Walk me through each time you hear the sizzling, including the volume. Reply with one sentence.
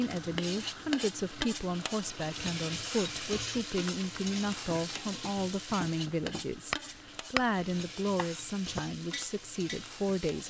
You can hear the sizzling from 0.0 to 10.4 s, getting quieter.